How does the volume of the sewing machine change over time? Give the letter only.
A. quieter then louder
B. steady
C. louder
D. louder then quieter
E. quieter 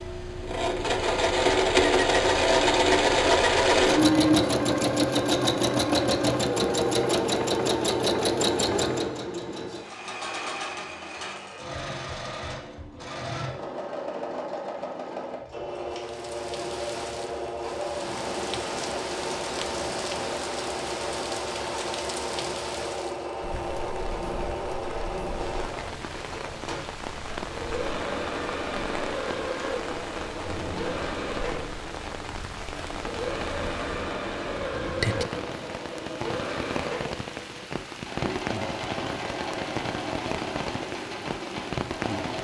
E.